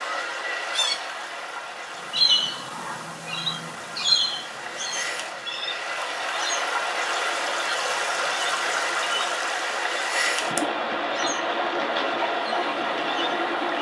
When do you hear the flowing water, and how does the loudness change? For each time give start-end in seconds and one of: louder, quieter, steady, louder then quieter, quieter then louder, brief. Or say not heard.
0.0-13.7 louder.